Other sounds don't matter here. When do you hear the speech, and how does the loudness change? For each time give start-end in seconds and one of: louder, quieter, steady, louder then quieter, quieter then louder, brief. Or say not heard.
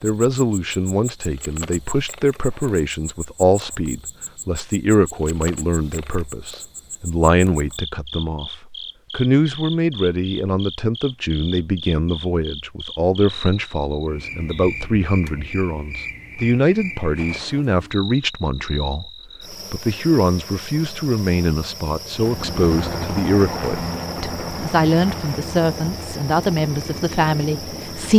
0.0-28.1 steady.